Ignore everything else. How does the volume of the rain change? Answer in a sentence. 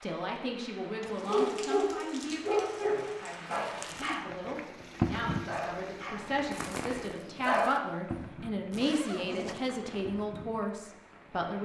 The loudness of the rain goes up, then down.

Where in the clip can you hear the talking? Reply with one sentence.
The talking can be heard from 0.0 to 11.6 s.